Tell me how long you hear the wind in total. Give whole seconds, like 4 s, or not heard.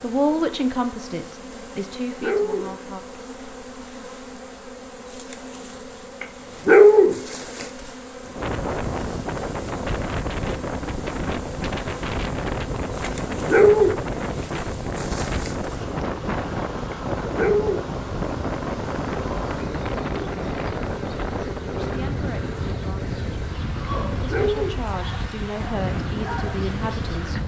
19 s.